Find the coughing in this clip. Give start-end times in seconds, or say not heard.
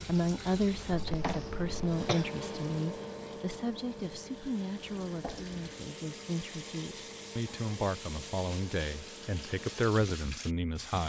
0.9-2.2.